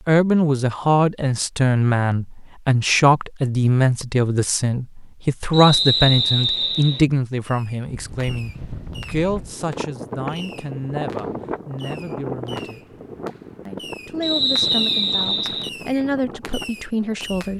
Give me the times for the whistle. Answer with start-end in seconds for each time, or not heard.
5.5-7.0, 14.2-15.7.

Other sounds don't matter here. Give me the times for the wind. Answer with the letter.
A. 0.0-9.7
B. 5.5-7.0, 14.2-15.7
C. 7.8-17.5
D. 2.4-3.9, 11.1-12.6
C.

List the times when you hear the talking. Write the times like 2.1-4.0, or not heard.
0.1-12.9, 13.7-17.5.